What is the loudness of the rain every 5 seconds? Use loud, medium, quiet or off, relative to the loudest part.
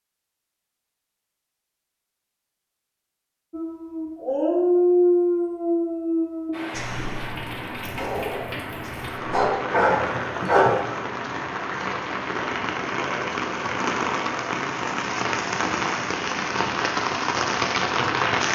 off, medium, loud, loud.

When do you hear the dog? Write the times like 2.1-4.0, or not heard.
3.5-10.8.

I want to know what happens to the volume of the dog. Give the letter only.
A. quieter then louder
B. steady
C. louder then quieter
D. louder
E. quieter
A.